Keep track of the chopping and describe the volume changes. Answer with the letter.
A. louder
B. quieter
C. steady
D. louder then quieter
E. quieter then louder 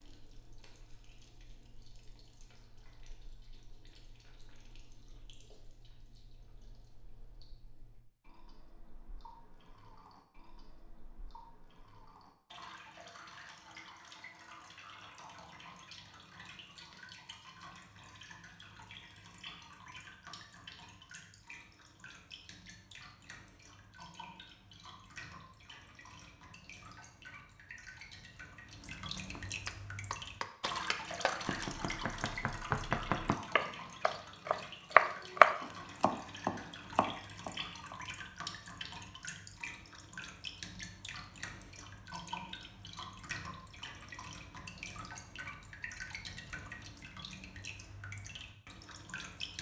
D.